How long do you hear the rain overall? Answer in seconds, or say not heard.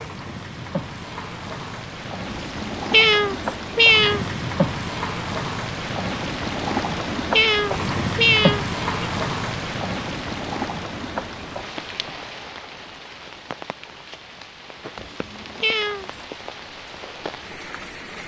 18 s.